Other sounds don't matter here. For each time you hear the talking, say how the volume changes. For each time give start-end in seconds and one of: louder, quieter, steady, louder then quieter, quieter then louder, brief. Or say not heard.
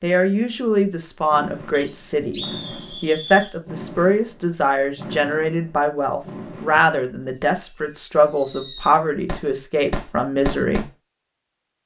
0.0-10.8 steady.